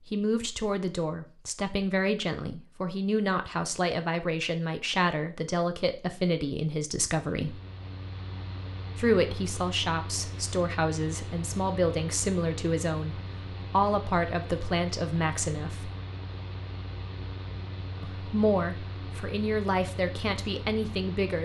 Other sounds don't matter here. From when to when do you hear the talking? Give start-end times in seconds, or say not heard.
0.1-7.6, 8.9-15.9, 18.0-21.3.